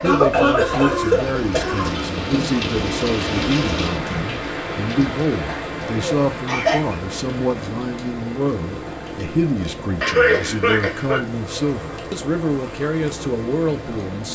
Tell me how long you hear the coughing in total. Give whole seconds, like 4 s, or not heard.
5 s.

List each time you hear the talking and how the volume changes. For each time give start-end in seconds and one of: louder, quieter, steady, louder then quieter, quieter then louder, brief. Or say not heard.
0.0-14.2 steady.